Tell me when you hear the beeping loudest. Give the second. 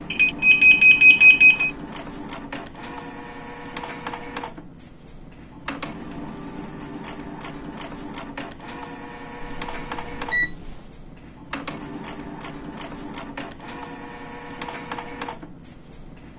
1 s.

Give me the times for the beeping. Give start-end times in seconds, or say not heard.
0.1-1.7, 9.4-10.9.